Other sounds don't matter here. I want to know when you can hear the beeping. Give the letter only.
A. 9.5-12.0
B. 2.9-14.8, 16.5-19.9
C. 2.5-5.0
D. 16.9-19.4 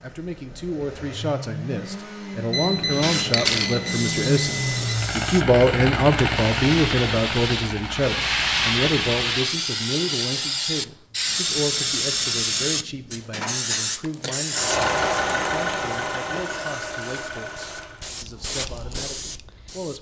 C.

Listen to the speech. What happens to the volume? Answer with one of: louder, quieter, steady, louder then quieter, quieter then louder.
louder then quieter.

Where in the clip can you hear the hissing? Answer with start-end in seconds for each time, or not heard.
2.9-14.8, 16.5-19.9.